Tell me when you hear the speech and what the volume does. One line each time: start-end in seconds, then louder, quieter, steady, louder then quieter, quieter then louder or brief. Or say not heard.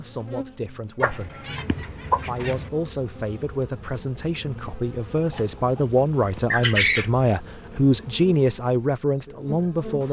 0.0-1.4 brief
2.2-10.0 louder.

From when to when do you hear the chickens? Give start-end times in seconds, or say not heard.
1.0-2.7, 5.3-7.1.